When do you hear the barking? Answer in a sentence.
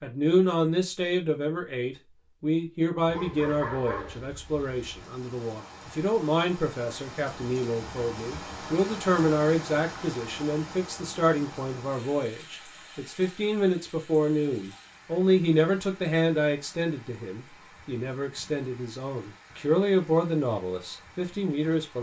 You can hear the barking from 3.0 to 5.0 s.